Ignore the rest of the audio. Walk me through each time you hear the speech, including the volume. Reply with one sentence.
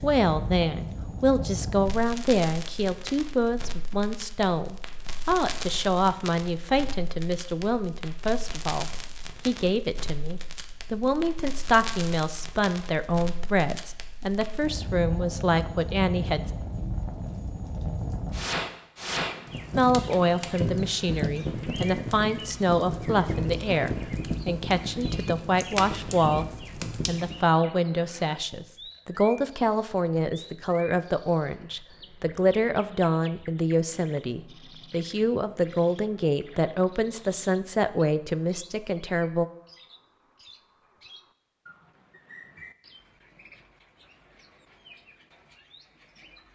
The speech can be heard from 0.0 to 16.5 s, at a steady volume; from 19.8 to 26.4 s, at a steady volume; and from 27.1 to 39.5 s, at a steady volume.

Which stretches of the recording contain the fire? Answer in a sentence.
The fire can be heard from 0.0 to 27.4 s.